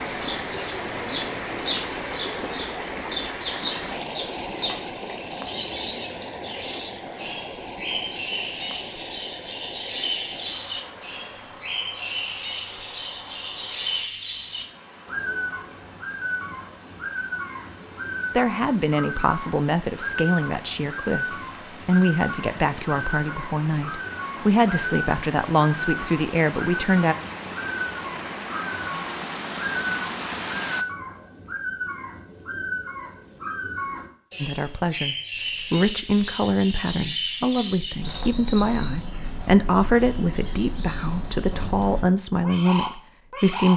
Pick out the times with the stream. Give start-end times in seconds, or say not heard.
0.0-30.9.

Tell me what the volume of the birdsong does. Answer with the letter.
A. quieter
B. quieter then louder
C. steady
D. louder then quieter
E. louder
C.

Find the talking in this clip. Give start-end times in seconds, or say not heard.
18.3-27.1, 34.4-43.7.